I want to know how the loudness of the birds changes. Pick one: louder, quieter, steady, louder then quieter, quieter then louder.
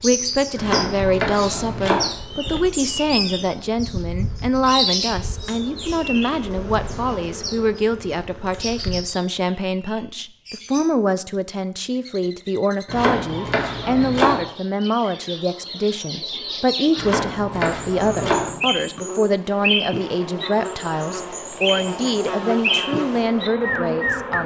quieter then louder.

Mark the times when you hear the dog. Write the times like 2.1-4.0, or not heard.
not heard.